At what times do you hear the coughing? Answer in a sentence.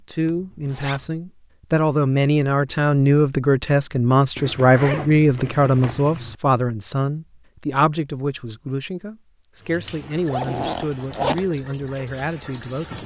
You can't hear the coughing here.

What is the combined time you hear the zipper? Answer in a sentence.
The zipper can be heard for 4 seconds in total.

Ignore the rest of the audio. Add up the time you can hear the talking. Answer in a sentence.
You can hear the talking for 13 seconds altogether.